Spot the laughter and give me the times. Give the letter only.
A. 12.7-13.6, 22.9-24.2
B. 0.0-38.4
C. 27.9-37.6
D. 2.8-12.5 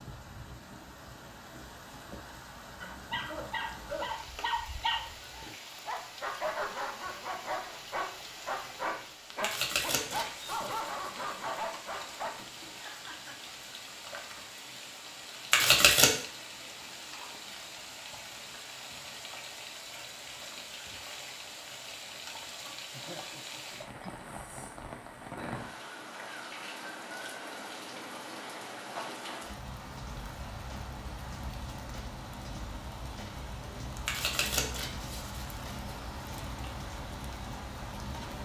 A.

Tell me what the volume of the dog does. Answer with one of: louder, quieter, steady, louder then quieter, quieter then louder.
steady.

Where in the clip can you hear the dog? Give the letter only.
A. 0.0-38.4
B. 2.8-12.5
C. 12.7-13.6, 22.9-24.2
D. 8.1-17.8
B.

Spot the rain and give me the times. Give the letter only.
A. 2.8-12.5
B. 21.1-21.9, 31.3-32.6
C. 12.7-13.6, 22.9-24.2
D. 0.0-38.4
D.